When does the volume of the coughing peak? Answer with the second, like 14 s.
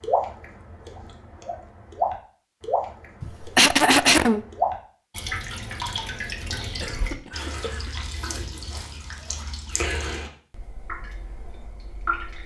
4 s.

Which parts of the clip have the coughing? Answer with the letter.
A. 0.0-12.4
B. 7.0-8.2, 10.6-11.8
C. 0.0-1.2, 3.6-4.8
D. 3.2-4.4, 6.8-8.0
D.